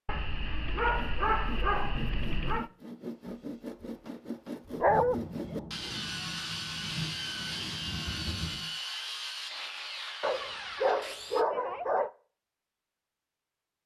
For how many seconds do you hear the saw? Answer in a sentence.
The saw can be heard for 11 seconds in total.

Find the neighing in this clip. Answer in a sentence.
The neighing can't be heard in this clip.